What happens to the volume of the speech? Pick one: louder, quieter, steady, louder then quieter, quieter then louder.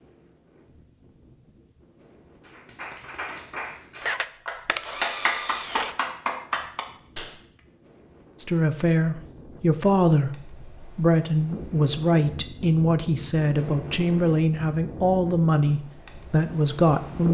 steady.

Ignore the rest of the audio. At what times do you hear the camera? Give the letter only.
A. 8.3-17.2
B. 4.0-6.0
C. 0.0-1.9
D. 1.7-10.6
B.